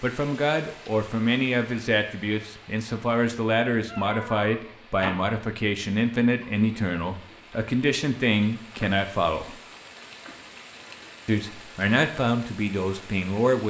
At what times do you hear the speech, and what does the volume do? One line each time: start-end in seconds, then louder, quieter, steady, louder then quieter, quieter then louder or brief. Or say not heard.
0.0-9.6 steady
11.2-13.6 brief.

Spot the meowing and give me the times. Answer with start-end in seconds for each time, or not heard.
3.9-5.1.